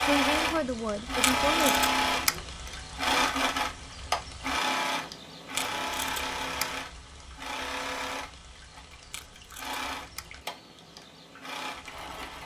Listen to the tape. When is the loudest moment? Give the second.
2 s.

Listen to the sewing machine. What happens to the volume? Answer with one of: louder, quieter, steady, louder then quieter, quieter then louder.
quieter.